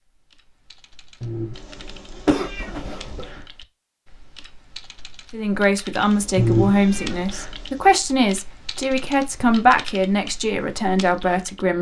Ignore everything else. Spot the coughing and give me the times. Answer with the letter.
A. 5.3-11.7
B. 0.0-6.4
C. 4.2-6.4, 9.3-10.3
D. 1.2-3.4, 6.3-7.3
D.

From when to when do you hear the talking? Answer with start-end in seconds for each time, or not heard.
5.3-11.7.